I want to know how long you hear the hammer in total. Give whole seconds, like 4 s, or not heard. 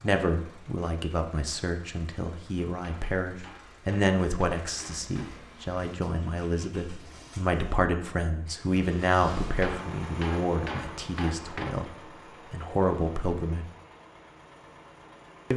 5 s.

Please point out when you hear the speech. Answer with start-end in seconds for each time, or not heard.
0.0-13.7.